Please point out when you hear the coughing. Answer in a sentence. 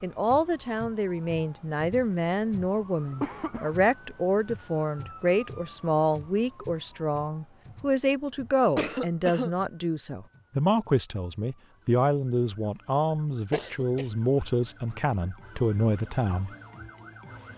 The coughing can be heard from 3.2 to 3.8 s, from 8.8 to 9.5 s and from 13.5 to 14.1 s.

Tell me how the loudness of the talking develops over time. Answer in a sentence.
The loudness of the talking stays about the same.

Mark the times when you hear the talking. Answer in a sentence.
The talking can be heard from 0.0 to 16.5 s.